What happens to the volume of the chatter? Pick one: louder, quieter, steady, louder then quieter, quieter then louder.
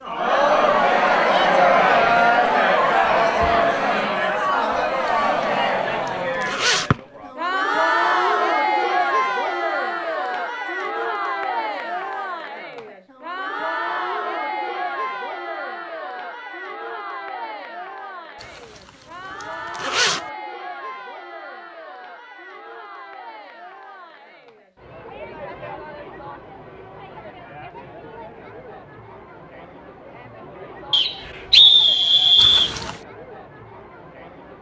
quieter.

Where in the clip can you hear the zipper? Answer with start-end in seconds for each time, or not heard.
5.0-6.9, 18.4-20.2, 32.4-33.0.